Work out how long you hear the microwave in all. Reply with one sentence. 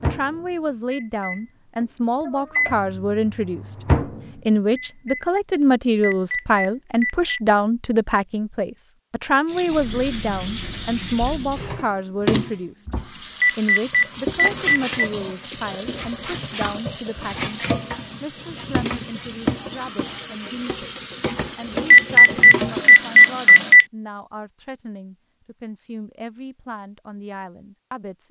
The microwave can be heard for 5 seconds in total.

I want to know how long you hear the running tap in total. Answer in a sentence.
You can hear the running tap for 14 seconds altogether.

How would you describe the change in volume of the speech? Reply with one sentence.
The volume of the speech goes down.